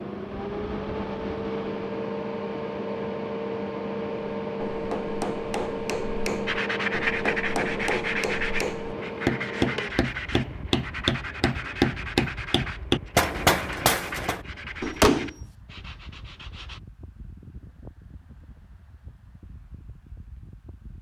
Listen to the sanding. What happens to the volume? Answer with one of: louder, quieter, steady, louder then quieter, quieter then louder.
quieter.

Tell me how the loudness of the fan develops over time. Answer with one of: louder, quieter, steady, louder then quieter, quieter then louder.
quieter.